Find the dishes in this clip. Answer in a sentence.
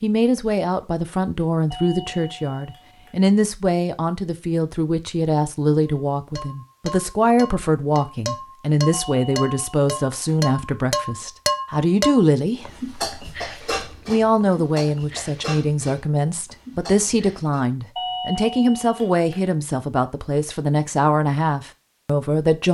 The dishes can be heard from 5.8 to 17.6 s.